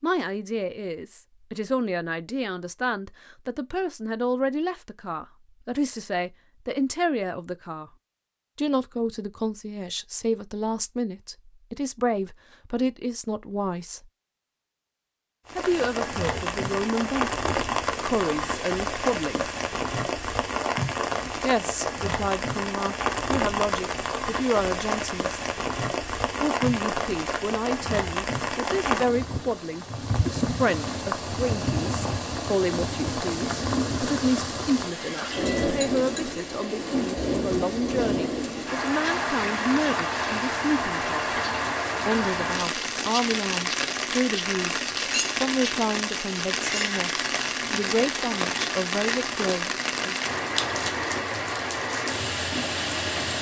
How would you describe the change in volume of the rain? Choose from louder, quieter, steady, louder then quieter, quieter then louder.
steady.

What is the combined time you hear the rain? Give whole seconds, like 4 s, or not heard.
38 s.